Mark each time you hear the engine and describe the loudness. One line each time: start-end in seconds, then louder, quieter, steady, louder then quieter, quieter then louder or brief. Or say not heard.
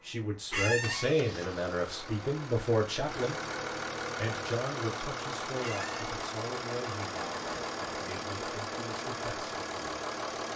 0.0-10.5 louder.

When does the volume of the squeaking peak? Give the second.
1 s.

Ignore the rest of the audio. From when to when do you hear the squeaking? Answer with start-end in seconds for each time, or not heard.
0.5-1.1, 5.6-6.1.